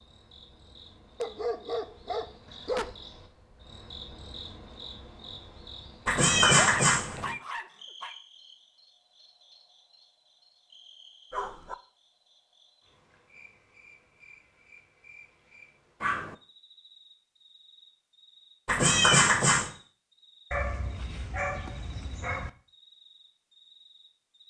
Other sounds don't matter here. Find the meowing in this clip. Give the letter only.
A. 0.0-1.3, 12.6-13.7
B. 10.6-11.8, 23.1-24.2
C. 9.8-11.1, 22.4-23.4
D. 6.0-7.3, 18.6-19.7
D.